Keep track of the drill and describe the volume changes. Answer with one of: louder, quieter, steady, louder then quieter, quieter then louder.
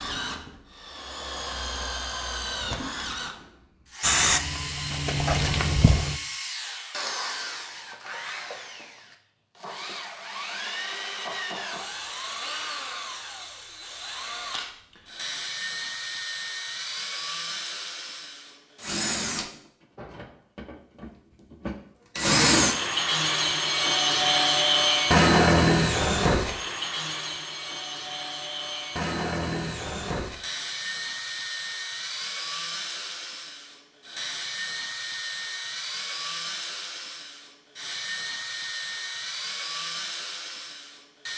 louder then quieter.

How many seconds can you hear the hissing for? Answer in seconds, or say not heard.
2 s.